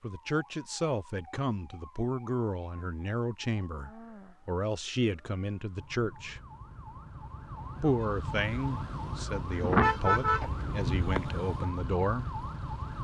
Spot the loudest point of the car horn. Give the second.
10 s.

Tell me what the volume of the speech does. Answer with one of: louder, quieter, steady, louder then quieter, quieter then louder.
steady.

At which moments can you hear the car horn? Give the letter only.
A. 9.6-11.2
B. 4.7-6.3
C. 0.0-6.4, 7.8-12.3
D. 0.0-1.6
A.